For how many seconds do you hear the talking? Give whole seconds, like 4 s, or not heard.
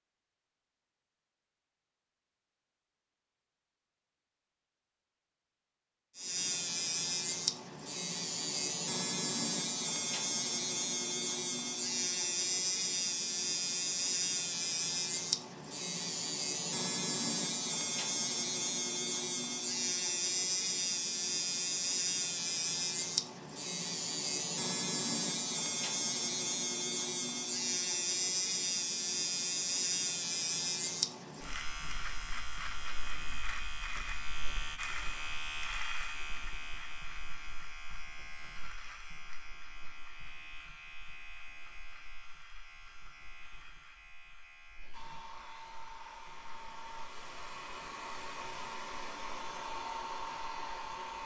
not heard.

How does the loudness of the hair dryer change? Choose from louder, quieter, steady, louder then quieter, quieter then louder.
louder.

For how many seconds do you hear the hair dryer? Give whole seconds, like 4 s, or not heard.
6 s.